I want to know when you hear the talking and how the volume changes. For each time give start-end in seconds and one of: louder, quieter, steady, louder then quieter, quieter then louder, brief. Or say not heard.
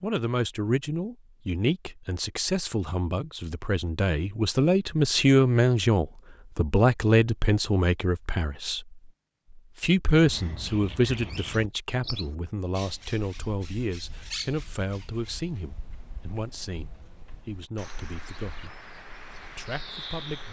0.0-18.7 louder then quieter
19.4-20.4 brief.